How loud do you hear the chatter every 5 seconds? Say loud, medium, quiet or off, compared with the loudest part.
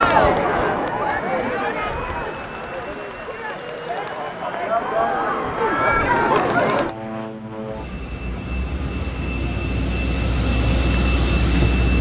loud, loud, off.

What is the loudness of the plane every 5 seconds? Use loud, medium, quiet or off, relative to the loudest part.
medium, medium, loud.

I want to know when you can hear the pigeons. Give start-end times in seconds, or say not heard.
not heard.